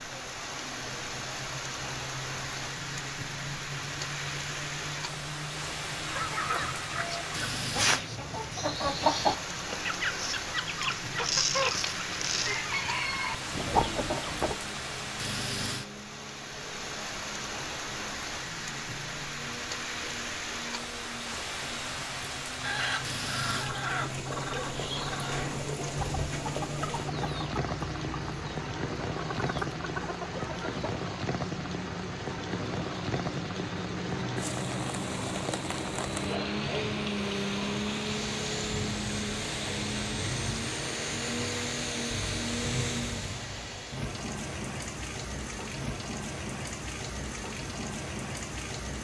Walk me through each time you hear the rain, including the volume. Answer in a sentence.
The rain can be heard from 0.0 to 48.9 s, at a steady volume.